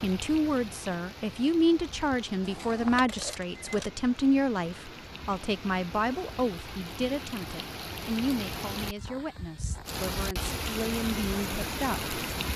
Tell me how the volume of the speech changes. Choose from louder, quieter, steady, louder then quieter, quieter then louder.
quieter.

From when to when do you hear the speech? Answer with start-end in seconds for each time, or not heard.
0.0-12.2.